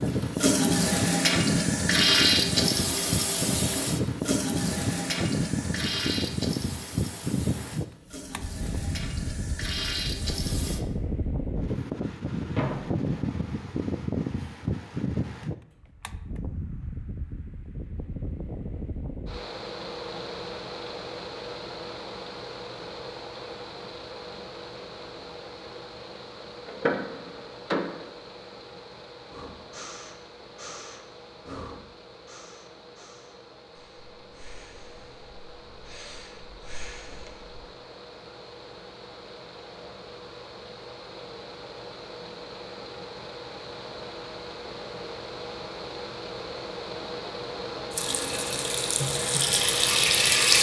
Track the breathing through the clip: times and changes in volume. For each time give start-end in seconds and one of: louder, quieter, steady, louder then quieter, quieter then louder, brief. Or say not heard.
29.3-37.6 quieter then louder.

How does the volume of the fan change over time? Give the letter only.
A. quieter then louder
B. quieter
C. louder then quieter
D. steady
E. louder
A.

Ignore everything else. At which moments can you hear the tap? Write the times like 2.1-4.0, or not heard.
0.0-10.8, 47.9-50.5.